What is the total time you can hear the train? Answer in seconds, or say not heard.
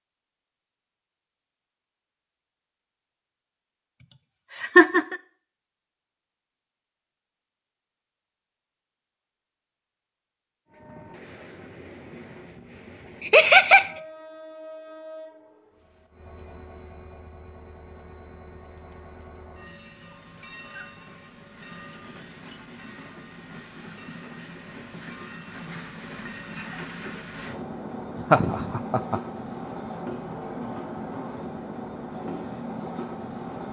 23 s.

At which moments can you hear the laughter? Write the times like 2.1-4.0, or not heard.
4.1-5.2, 13.2-13.9, 28.3-29.2.